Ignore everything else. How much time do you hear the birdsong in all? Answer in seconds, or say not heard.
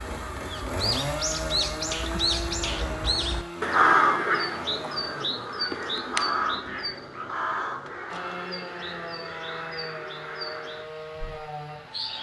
12 s.